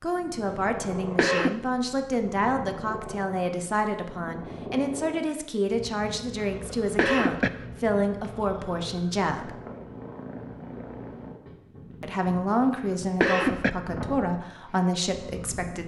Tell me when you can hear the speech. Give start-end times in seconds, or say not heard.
0.0-9.6, 12.0-15.8.